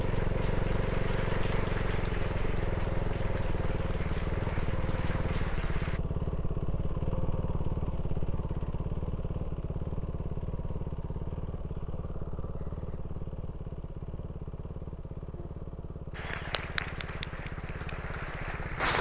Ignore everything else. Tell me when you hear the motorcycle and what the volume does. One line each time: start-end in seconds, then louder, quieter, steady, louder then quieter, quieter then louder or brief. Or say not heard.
0.0-18.9 quieter.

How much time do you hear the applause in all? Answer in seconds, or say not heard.
9 s.